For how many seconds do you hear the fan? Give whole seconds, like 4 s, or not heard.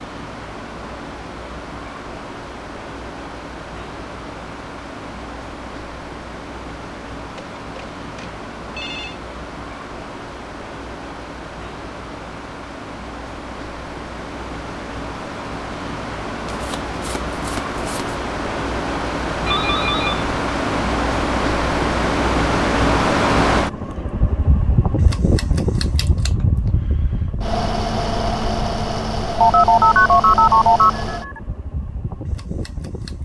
33 s.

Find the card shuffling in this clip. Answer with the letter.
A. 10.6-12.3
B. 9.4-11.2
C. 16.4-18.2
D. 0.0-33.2
C.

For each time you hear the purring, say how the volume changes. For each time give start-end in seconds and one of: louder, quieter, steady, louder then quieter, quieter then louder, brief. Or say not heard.
not heard.